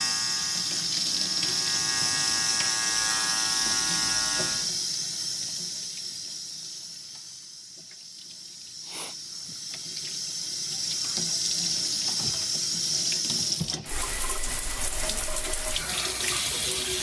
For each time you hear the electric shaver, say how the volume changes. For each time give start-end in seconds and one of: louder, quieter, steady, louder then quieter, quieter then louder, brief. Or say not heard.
0.0-4.7 louder.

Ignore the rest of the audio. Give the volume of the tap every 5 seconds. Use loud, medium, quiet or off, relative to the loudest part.
loud, medium, loud, loud.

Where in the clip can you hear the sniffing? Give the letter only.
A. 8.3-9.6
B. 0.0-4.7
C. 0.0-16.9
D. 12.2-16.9
A.